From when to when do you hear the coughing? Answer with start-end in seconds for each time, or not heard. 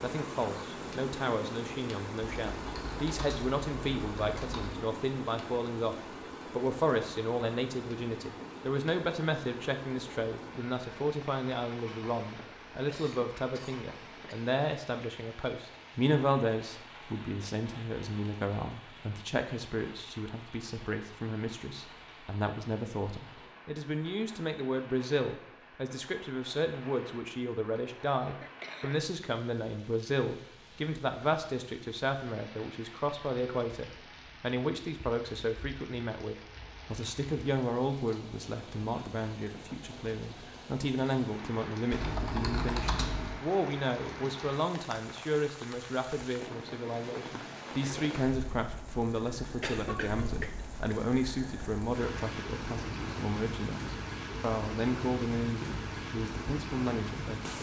12.8-14.6, 28.0-28.9, 49.6-51.1.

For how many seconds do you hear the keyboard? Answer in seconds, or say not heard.
4 s.